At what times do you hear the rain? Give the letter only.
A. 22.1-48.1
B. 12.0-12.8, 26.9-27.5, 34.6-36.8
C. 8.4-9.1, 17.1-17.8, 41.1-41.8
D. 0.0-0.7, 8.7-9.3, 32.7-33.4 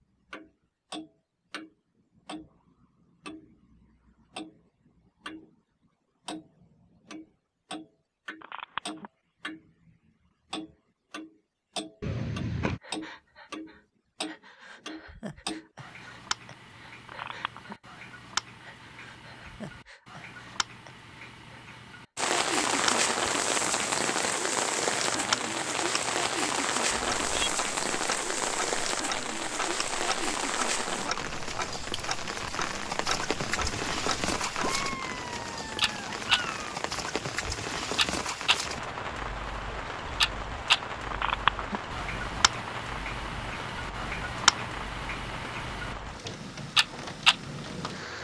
A.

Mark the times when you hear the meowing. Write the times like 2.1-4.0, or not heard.
12.0-12.8, 26.9-27.5, 34.6-36.8.